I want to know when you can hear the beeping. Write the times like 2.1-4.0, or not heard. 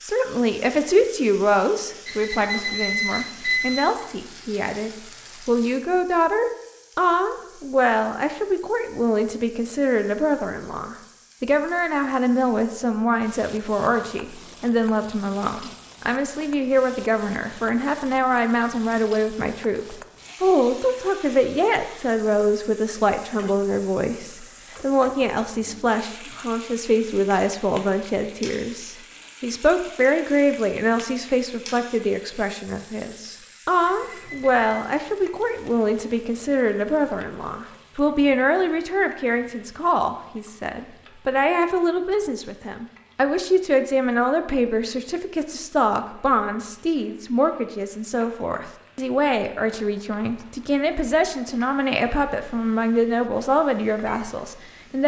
2.0-3.9, 33.9-34.6.